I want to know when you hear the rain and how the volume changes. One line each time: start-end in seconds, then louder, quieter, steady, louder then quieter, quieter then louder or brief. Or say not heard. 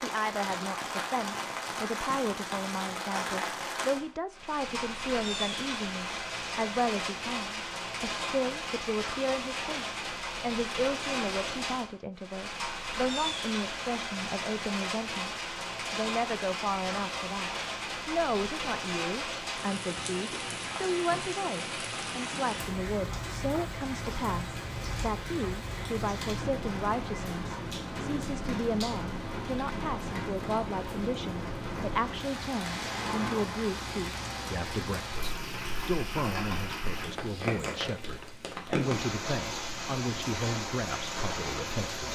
0.0-42.0 steady.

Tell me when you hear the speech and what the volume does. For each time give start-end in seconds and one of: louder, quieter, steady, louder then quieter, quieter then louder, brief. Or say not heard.
0.0-15.3 steady
15.9-42.0 steady.